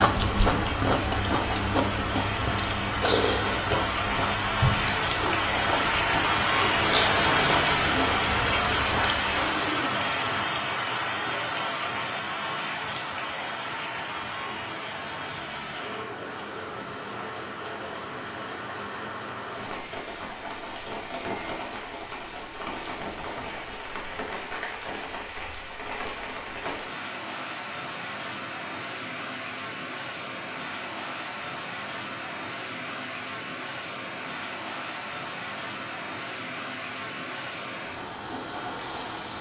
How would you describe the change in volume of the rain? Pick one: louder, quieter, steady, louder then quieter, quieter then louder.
quieter.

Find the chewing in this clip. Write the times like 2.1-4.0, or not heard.
0.0-9.6.